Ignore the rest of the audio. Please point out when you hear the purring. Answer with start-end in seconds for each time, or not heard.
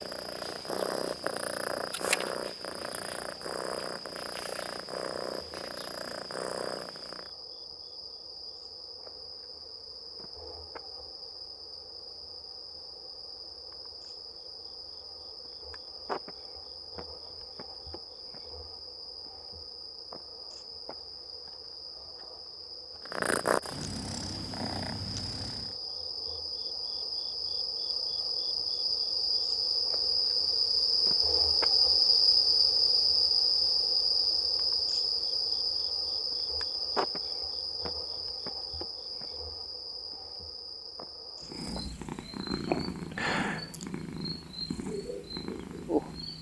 0.0-7.3, 23.1-25.8, 41.4-46.3.